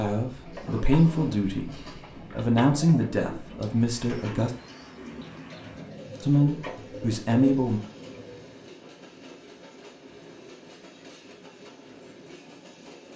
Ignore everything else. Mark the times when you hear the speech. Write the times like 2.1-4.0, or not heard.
0.0-4.5, 6.2-7.8.